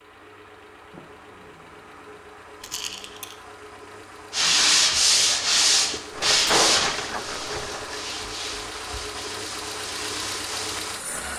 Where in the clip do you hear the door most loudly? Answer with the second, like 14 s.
7 s.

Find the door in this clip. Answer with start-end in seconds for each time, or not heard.
0.9-2.3, 6.3-7.2.